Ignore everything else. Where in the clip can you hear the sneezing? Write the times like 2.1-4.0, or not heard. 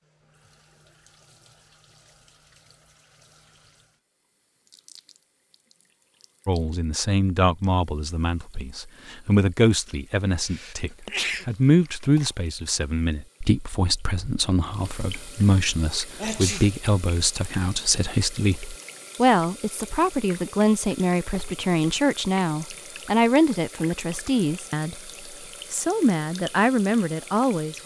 10.4-12.3, 16.2-16.8.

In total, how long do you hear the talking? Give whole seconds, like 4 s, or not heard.
21 s.